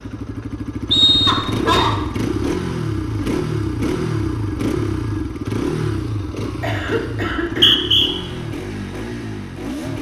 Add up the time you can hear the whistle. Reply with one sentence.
You can hear the whistle for 2 seconds altogether.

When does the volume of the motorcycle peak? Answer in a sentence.
The volume of the motorcycle peaks at 4 seconds.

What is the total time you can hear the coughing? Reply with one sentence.
The coughing can be heard for 2 seconds in total.